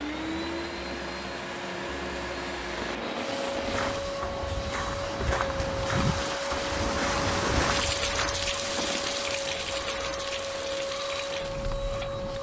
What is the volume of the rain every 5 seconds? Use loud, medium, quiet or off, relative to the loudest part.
medium, loud, medium.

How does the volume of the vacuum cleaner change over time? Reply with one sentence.
The volume of the vacuum cleaner stays about the same.